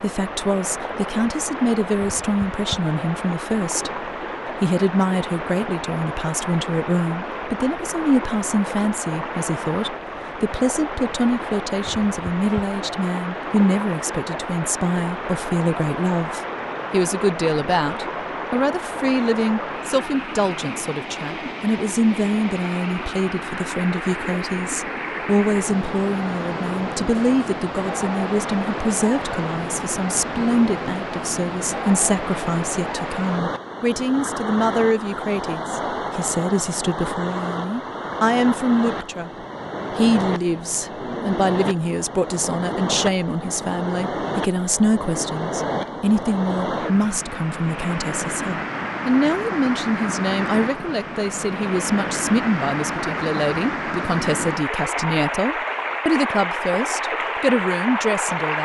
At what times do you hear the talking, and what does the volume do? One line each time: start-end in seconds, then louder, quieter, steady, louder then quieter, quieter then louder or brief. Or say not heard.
0.0-39.3 steady
39.9-58.6 steady.